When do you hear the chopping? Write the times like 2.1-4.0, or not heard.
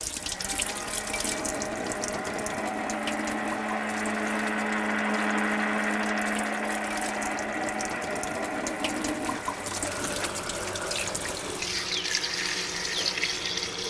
not heard.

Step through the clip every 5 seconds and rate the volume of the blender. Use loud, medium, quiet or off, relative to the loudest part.
loud, loud, medium.